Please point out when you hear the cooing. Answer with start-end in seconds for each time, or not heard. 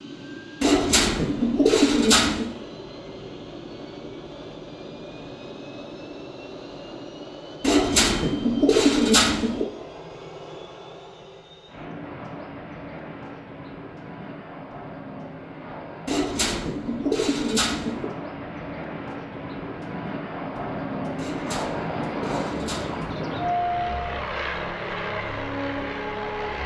0.6-2.5, 7.6-9.7, 16.1-18.1, 21.1-23.1.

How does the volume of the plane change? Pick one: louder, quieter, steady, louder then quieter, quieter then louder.
louder.